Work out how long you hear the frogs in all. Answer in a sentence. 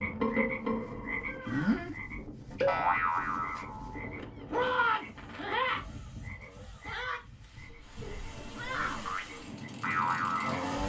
The frogs can be heard for 11 seconds in total.